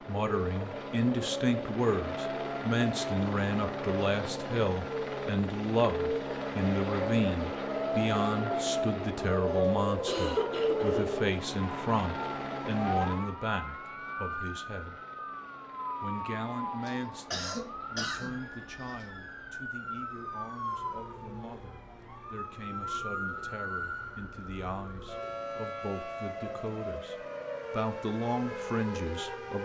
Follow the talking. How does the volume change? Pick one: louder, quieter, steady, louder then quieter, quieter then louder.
quieter then louder.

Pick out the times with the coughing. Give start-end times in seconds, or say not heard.
9.4-11.0, 16.9-19.1.